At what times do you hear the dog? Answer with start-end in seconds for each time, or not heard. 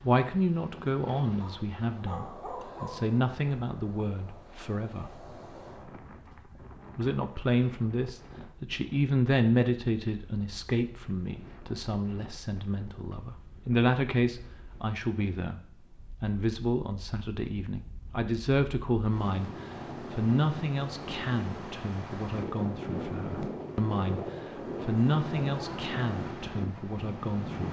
1.4-3.1.